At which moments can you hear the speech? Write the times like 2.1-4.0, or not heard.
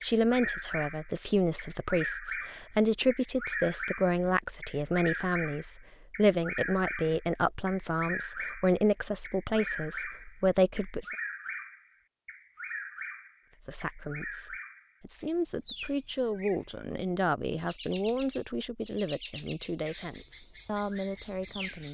0.0-11.1, 13.6-21.9.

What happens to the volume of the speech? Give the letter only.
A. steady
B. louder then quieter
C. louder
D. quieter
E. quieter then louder
D.